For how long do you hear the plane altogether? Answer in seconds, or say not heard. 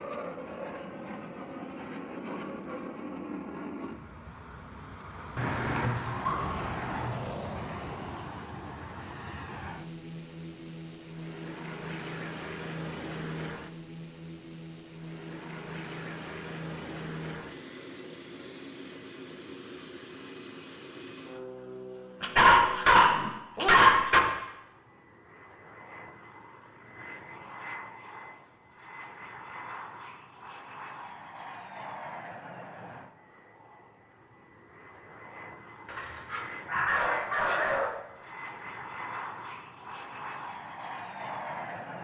42 s.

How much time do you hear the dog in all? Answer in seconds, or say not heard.
6 s.